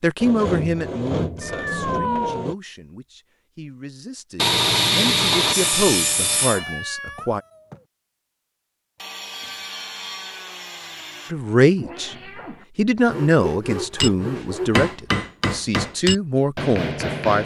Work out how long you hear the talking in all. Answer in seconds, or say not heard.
13 s.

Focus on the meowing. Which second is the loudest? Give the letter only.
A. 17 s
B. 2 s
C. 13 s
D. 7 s
B.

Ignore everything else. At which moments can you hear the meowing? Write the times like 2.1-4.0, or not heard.
1.4-2.5, 6.4-7.8, 11.8-12.7.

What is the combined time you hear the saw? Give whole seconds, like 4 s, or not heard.
9 s.